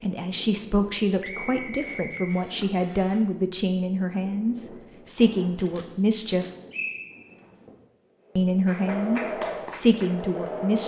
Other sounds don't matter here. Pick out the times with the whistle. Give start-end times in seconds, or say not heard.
1.2-2.5, 6.7-7.5.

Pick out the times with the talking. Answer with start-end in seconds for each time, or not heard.
0.0-6.5, 8.3-10.8.